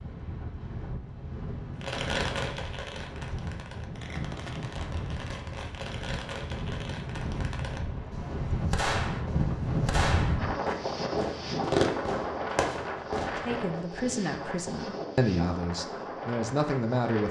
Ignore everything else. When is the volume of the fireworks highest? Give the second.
12 s.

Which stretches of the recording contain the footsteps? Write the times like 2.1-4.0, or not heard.
not heard.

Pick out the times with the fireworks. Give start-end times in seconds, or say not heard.
1.8-13.8.